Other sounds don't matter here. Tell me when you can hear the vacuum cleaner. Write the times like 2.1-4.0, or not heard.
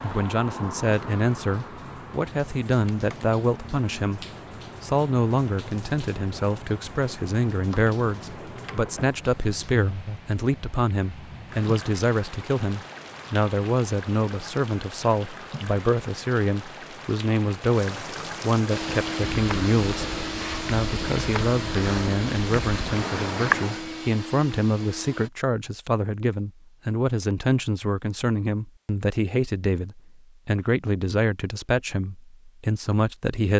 18.7-25.3.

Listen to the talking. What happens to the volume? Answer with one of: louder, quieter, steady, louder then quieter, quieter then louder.
steady.